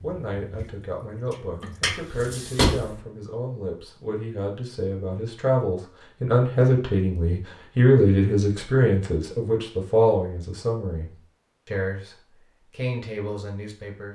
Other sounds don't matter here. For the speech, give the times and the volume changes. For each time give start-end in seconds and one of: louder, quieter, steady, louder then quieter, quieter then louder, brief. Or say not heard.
0.0-14.0 louder then quieter.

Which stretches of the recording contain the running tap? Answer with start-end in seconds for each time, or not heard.
0.0-3.0.